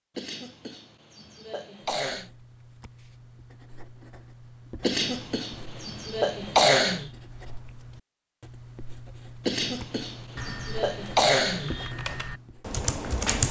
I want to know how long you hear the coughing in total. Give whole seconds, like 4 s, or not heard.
7 s.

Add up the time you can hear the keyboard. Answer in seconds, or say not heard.
3 s.